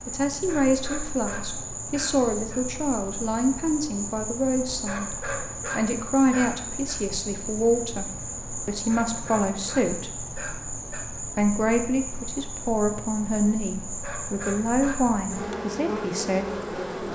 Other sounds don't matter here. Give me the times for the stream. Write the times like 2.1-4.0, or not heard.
not heard.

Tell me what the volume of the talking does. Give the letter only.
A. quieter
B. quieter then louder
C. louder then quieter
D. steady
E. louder
D.